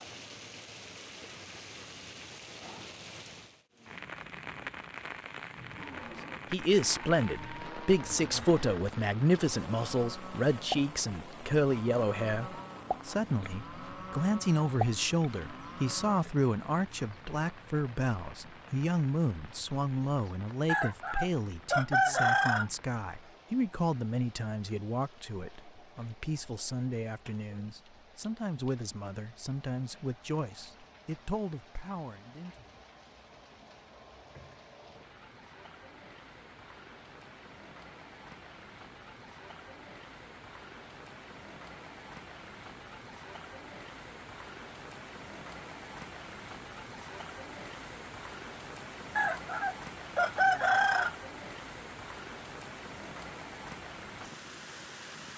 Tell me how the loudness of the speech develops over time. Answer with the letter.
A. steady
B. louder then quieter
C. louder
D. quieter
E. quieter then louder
D.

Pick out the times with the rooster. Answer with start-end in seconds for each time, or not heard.
20.6-22.6, 49.1-51.1.